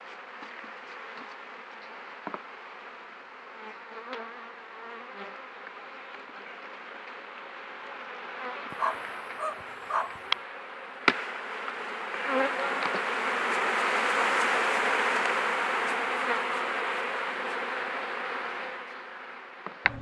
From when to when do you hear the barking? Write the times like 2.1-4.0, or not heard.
8.7-10.2.